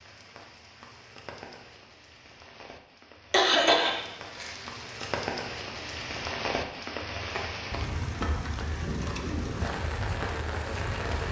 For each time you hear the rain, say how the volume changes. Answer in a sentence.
You can hear the rain from 0.0 to 11.2 s, getting louder.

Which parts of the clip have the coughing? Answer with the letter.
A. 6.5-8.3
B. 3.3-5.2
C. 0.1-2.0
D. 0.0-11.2
B.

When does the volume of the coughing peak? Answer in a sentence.
The volume of the coughing peaks at 4 seconds.